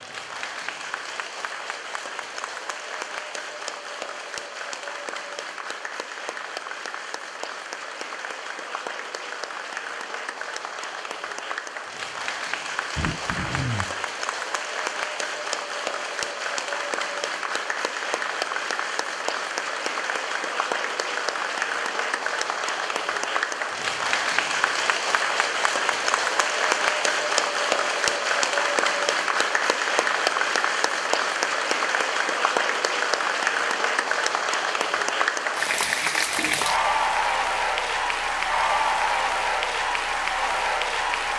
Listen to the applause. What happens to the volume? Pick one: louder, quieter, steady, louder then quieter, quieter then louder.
louder.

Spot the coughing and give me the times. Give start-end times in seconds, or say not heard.
12.9-13.8.